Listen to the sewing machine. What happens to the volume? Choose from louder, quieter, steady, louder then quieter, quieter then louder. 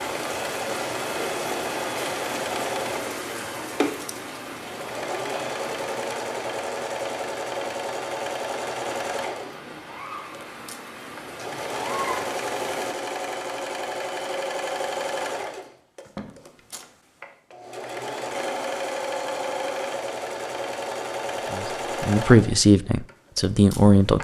steady.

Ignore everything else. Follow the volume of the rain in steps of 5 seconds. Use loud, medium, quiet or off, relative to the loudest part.
loud, medium, loud, off, off.